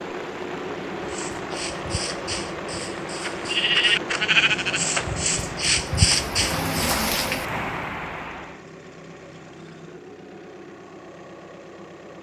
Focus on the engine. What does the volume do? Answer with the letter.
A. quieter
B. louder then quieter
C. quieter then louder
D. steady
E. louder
A.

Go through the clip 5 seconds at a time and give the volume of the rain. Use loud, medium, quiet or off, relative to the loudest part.
medium, loud, off.